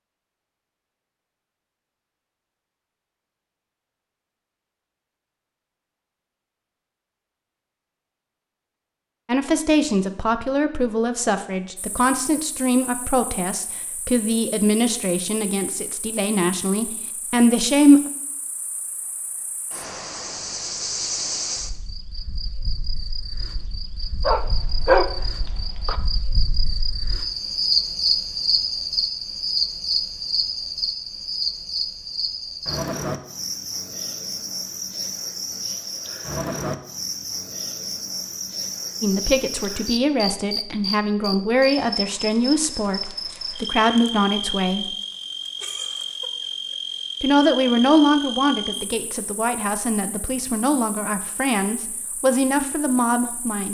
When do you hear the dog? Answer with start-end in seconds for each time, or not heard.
24.2-25.1.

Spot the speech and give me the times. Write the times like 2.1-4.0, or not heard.
9.2-18.0, 39.0-44.9, 47.2-53.7.